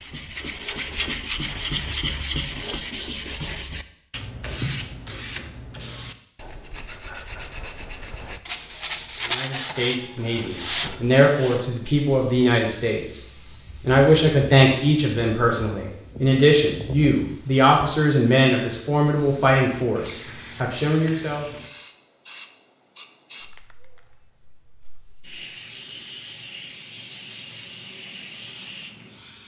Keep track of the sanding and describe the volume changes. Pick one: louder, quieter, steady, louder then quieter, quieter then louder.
quieter then louder.